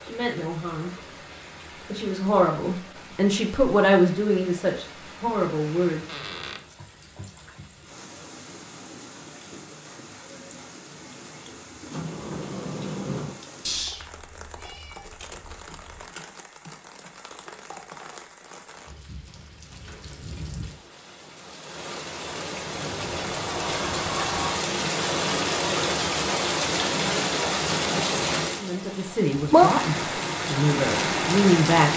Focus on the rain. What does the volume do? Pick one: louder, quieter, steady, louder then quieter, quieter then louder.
louder.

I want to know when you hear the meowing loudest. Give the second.
14 s.